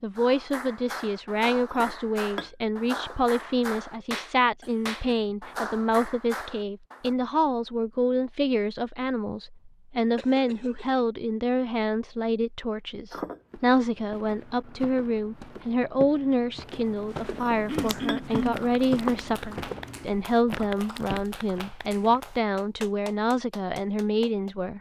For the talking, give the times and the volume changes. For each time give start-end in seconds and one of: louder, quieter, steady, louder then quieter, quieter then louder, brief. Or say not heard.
0.0-24.7 steady.